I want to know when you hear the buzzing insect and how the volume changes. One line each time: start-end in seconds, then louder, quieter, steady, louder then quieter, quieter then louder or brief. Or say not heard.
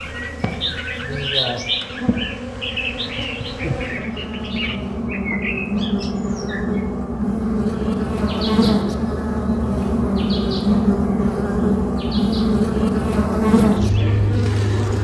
0.0-15.0 louder.